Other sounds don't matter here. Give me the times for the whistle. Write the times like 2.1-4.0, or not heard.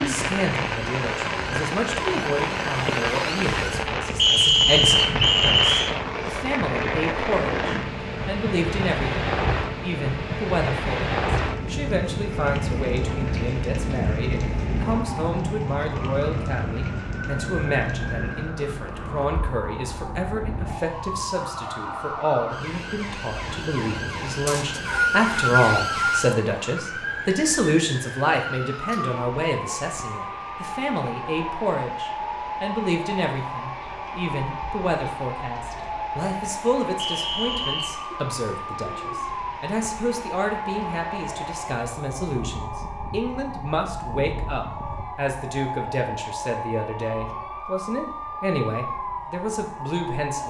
4.2-6.0, 24.4-26.3, 37.0-38.0.